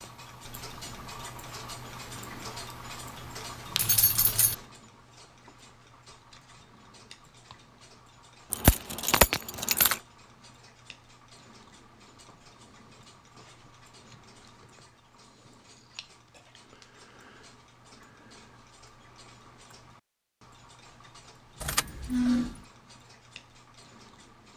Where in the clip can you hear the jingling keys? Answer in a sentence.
The jingling keys can be heard from 3.8 to 4.5 s, from 8.5 to 10.0 s and from 21.6 to 22.6 s.